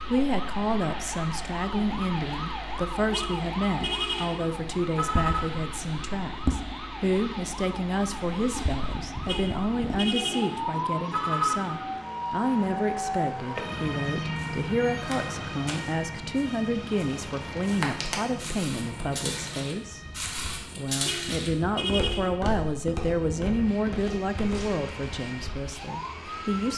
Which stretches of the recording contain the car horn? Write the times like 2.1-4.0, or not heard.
3.1-5.7, 9.2-11.8, 21.1-22.4.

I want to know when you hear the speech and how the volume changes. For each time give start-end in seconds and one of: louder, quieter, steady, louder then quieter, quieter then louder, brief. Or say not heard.
0.1-20.0 steady
20.8-26.7 quieter.